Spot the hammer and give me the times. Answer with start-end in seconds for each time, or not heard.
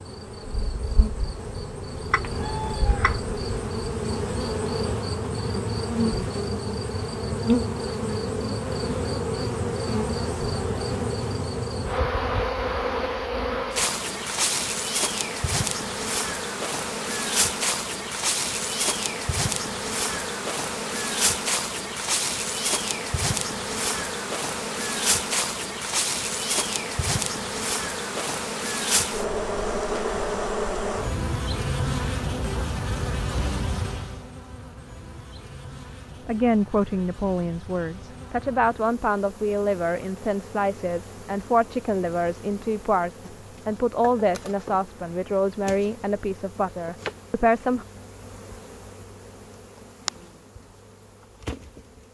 not heard.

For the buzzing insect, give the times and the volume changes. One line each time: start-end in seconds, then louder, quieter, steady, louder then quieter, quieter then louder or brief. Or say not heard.
0.0-52.0 quieter.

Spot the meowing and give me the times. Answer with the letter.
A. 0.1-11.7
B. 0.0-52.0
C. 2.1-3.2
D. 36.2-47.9
C.